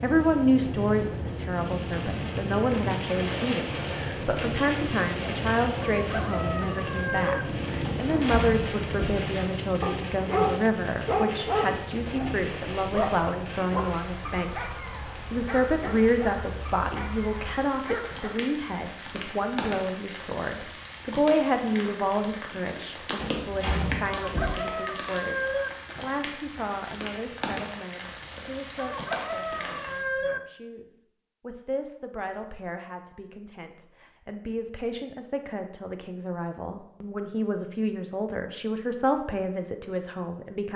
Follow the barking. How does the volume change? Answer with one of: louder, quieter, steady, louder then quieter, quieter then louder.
quieter.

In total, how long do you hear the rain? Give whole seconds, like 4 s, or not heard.
30 s.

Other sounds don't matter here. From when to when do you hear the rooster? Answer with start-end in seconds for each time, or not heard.
5.8-7.5, 24.2-25.7, 28.8-30.4.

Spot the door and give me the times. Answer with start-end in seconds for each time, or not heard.
7.8-9.2, 23.1-24.6.